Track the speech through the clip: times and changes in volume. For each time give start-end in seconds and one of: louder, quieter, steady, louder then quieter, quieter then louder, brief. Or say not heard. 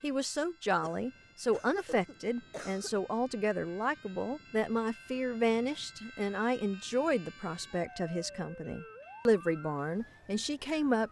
0.0-11.0 steady.